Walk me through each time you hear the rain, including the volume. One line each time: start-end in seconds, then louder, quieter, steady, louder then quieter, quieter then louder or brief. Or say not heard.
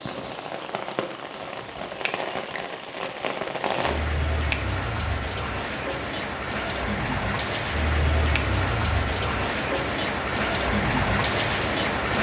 0.0-12.1 louder.